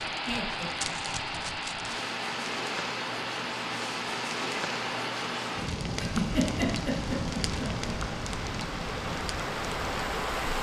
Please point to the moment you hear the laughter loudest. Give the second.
6 s.